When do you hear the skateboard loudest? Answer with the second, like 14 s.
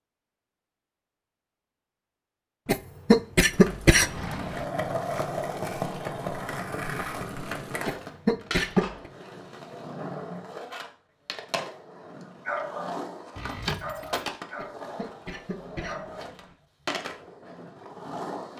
5 s.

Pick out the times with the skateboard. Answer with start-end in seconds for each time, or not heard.
3.5-18.5.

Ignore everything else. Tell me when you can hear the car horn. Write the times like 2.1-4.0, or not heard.
not heard.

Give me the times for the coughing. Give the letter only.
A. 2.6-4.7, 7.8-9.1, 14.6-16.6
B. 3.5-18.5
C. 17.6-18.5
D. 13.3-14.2
A.